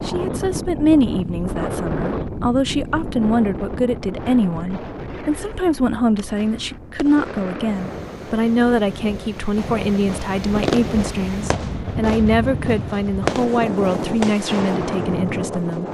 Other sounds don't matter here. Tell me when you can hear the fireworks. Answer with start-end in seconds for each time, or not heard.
6.2-15.8.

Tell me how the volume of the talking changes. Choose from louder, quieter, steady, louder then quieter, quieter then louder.
steady.